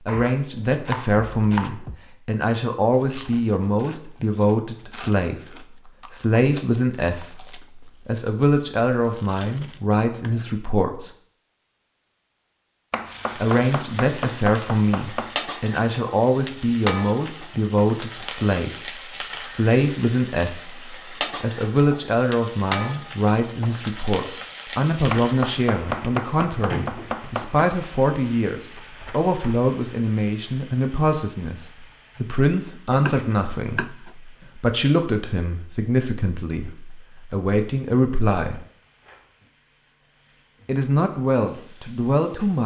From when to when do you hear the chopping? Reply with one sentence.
You can hear the chopping from 0.1 to 2.0 s, from 12.9 to 15.3 s, from 25.1 to 27.7 s and from 33.0 to 34.5 s.